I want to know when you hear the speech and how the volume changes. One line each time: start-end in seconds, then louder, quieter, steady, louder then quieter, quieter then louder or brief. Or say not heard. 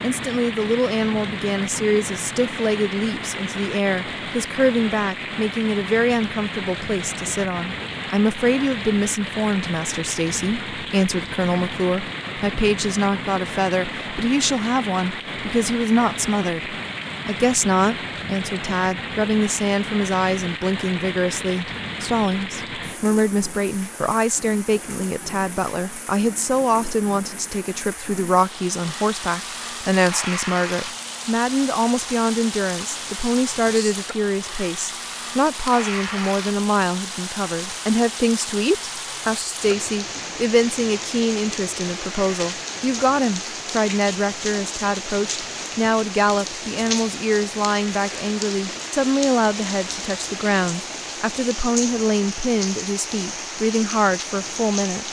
0.0-55.0 steady.